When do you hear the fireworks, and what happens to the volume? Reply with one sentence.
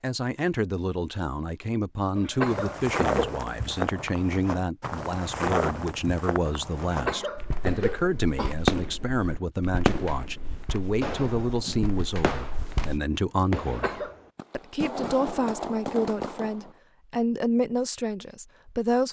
The fireworks can be heard briefly from 8.7 to 9.1 s; briefly from 9.8 to 10.4 s; and from 11.0 to 16.7 s, getting quieter then louder.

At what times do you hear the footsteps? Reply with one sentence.
You can hear the footsteps from 2.4 to 13.0 s.